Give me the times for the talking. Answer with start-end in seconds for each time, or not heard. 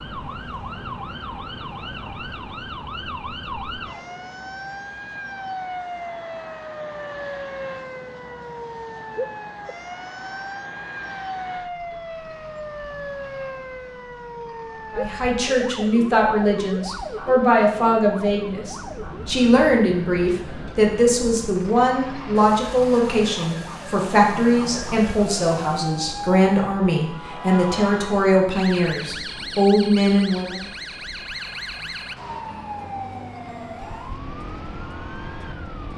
14.9-30.6.